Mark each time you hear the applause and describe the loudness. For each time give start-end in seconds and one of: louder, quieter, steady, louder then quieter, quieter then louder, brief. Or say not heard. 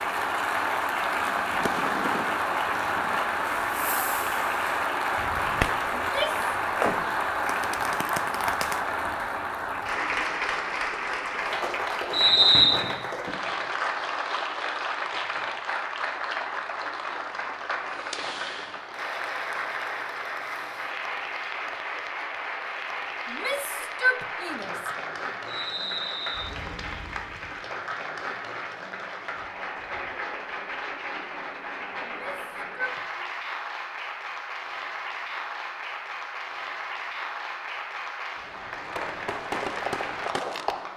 0.0-40.9 quieter.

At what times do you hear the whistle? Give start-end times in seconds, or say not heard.
12.1-12.8, 25.4-26.5.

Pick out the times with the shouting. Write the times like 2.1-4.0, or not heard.
6.0-6.5, 23.2-24.9, 32.0-33.2.